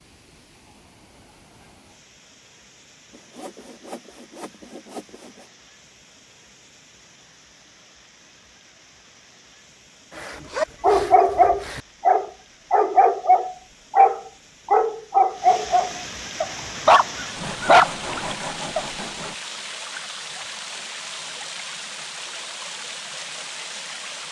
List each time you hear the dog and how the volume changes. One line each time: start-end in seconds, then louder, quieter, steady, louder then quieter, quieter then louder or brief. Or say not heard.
10.6-18.9 steady.